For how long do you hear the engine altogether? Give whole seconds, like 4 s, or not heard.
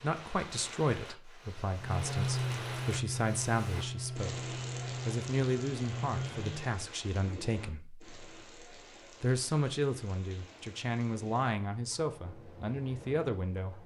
5 s.